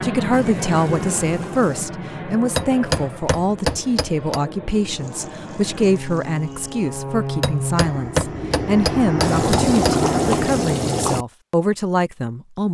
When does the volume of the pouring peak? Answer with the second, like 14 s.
10 s.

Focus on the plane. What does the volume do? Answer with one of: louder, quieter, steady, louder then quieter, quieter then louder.
quieter then louder.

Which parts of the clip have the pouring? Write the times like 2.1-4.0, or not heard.
0.3-1.9, 4.9-6.9, 9.2-11.2.